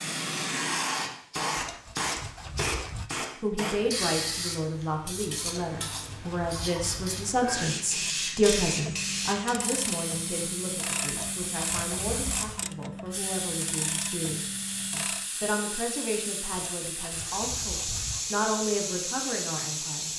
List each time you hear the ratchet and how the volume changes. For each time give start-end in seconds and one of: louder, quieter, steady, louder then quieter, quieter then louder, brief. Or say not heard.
8.0-15.3 steady.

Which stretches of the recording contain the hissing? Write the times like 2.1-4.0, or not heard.
0.0-20.1.